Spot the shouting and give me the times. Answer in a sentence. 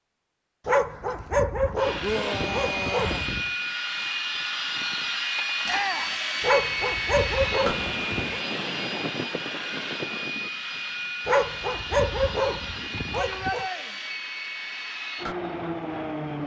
The shouting can be heard from 2.0 to 3.3 s, from 5.7 to 6.2 s and from 13.1 to 13.9 s.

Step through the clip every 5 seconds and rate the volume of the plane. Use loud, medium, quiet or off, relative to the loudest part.
loud, loud, medium, loud.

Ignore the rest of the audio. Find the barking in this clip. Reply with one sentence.
You can hear the barking from 0.7 to 3.5 s, from 6.4 to 8.4 s and from 11.2 to 13.7 s.